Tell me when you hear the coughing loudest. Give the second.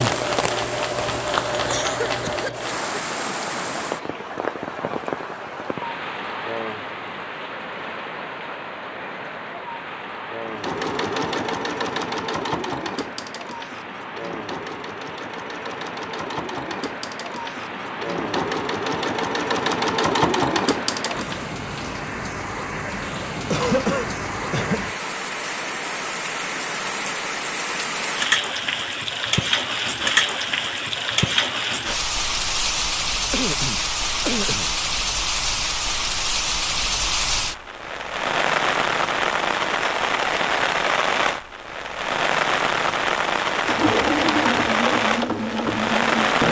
24 s.